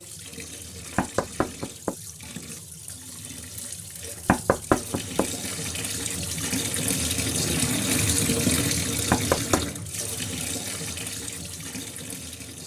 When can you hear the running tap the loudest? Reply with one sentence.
The volume of the running tap peaks at 8 seconds.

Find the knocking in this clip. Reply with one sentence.
The knocking can be heard from 0.9 to 1.9 s, from 4.2 to 5.5 s and from 9.1 to 9.7 s.